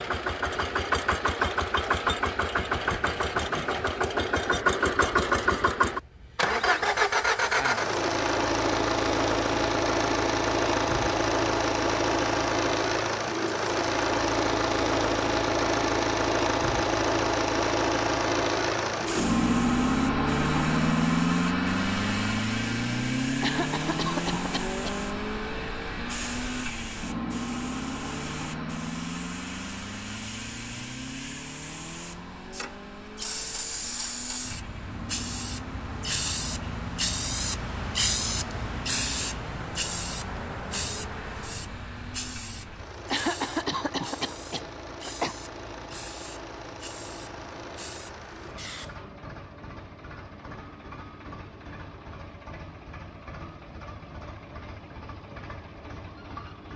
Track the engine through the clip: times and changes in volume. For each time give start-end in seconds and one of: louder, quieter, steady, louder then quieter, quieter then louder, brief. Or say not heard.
0.0-56.7 quieter.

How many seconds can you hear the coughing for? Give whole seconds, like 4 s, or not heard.
4 s.